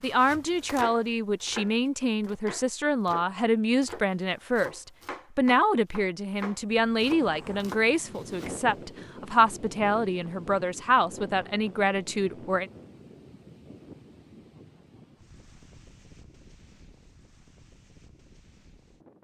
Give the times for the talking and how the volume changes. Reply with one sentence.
The talking can be heard from 0.0 to 12.7 s, at a steady volume.